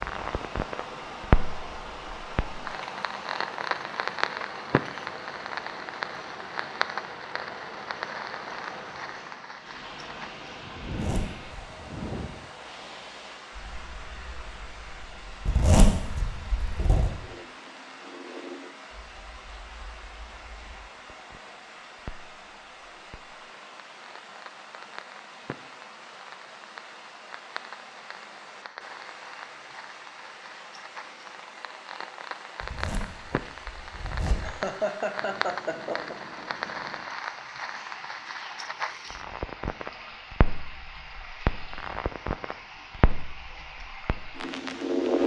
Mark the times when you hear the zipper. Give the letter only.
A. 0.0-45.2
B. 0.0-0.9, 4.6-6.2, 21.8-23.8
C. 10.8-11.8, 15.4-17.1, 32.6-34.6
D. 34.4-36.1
C.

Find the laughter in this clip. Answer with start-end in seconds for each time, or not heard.
34.4-36.1.